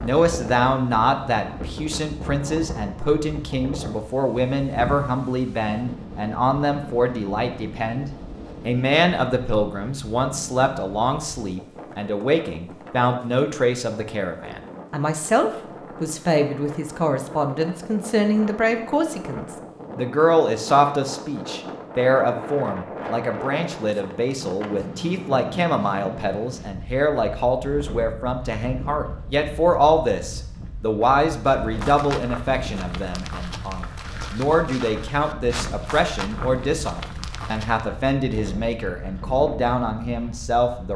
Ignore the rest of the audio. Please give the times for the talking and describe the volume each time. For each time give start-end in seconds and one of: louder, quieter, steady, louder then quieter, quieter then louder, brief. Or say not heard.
0.0-40.9 steady.